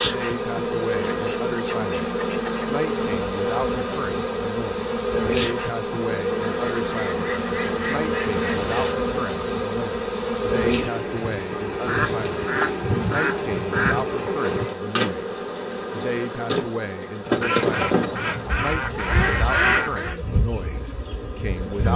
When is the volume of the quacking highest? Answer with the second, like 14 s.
20 s.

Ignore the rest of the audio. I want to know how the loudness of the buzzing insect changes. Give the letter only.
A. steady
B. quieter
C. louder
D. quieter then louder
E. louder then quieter
A.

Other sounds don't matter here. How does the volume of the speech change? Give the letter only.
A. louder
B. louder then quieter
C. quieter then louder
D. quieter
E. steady
E.